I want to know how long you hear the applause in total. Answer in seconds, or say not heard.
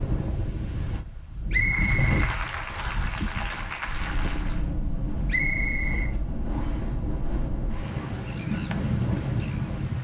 3 s.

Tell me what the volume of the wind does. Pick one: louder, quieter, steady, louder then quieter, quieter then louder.
quieter then louder.